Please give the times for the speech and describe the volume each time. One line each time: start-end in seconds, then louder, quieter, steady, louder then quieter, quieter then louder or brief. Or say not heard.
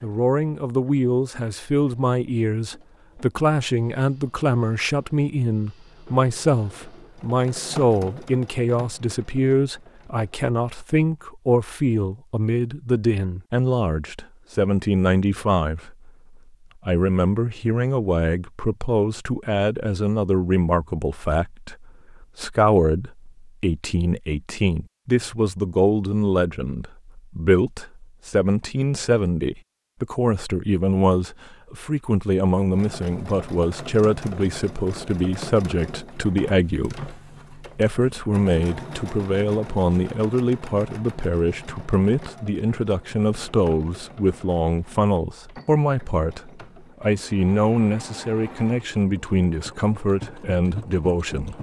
0.0-16.1 steady
16.9-51.5 steady.